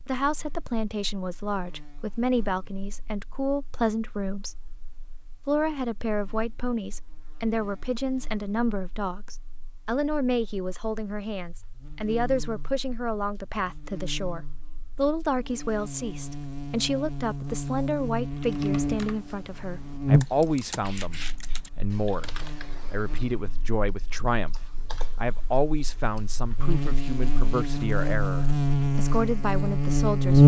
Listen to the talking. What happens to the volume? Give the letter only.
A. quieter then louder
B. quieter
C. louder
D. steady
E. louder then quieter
D.